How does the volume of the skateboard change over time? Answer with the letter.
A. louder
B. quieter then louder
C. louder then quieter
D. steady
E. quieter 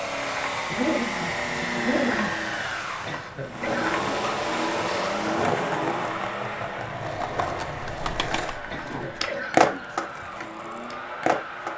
A.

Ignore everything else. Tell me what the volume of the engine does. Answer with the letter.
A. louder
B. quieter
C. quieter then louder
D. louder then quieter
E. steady
B.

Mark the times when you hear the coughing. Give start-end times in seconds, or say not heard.
3.0-4.2, 8.7-9.9.